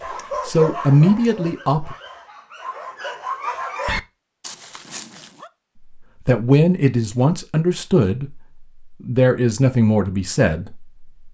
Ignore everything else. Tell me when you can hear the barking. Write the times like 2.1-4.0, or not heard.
0.0-5.5.